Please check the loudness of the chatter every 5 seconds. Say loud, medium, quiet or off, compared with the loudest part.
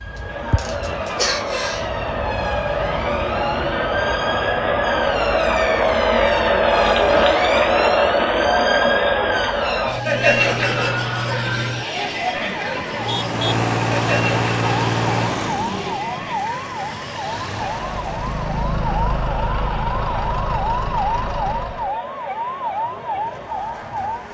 medium, loud, medium, quiet, quiet.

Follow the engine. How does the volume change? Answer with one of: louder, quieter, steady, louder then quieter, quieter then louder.
quieter then louder.